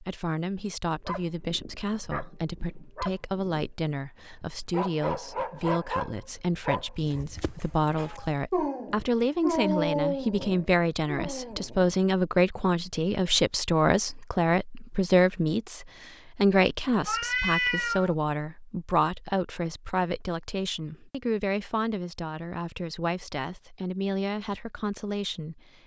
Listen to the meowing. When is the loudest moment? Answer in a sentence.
The volume of the meowing peaks at 18 seconds.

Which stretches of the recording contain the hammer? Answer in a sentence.
The hammer can't be heard in this clip.